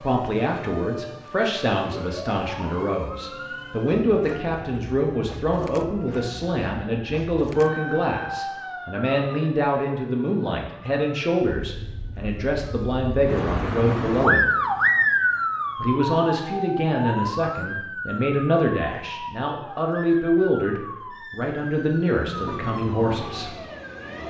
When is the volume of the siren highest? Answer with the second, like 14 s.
15 s.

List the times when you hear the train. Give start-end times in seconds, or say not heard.
22.2-24.2.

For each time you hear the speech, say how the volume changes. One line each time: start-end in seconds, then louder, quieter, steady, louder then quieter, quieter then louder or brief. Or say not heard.
0.0-14.5 steady
15.8-23.6 steady.